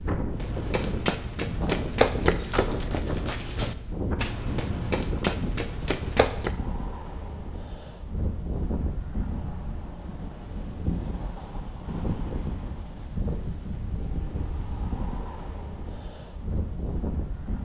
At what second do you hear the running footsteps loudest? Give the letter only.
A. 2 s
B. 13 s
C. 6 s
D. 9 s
A.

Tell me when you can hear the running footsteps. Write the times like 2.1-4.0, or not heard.
0.3-6.5.